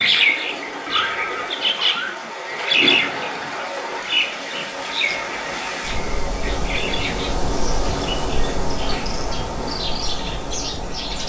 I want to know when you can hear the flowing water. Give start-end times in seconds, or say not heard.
0.0-11.2.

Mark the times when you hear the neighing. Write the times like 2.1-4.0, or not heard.
0.8-1.5.